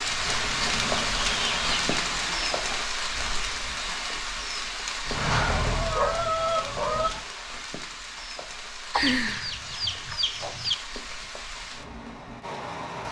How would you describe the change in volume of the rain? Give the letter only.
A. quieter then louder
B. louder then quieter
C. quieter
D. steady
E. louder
C.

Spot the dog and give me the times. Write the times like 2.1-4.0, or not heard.
5.0-7.2.